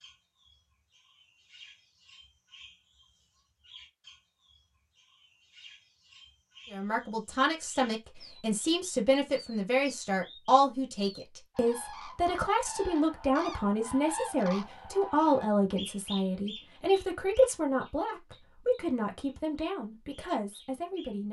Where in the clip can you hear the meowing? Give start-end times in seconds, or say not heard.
not heard.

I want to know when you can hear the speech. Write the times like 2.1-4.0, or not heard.
6.7-21.2.